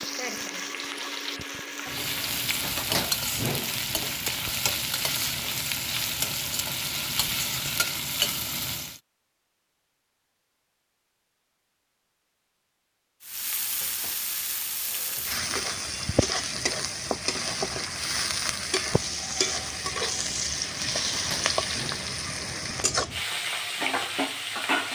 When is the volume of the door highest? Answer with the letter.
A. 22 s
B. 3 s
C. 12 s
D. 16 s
B.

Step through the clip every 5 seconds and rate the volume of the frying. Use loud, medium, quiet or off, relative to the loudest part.
loud, loud, medium, loud, loud.